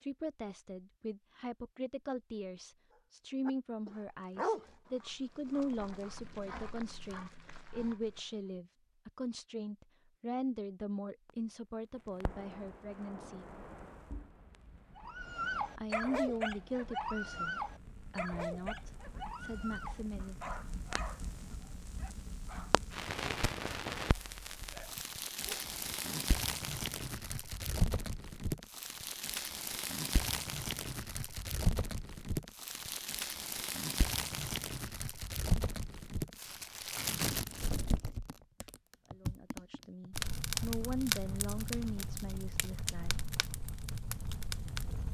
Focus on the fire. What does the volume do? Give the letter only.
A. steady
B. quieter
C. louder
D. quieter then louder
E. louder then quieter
C.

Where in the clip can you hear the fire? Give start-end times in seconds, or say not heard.
11.2-45.0.